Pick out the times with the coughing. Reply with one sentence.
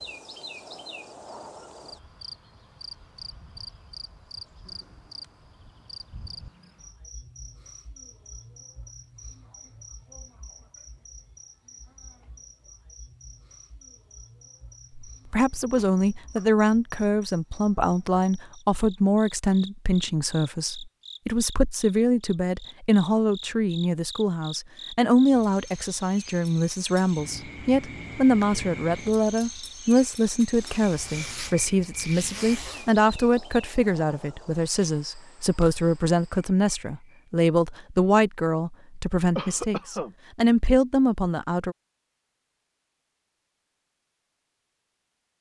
You can hear the coughing from 4.6 to 5.5 s, from 15.8 to 16.6 s and from 39.4 to 40.1 s.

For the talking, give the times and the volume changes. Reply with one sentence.
You can hear the talking from 14.9 to 41.8 s, at a steady volume.